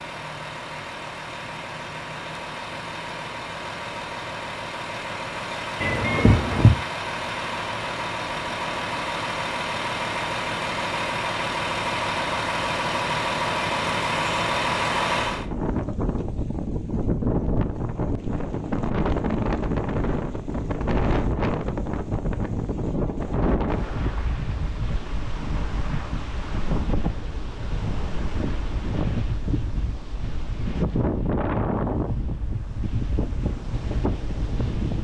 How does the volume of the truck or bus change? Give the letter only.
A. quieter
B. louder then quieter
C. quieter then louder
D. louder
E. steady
D.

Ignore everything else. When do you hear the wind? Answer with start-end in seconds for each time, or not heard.
15.2-35.0.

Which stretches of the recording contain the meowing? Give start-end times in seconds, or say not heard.
5.8-6.7.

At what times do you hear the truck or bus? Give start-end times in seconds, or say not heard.
0.0-15.4.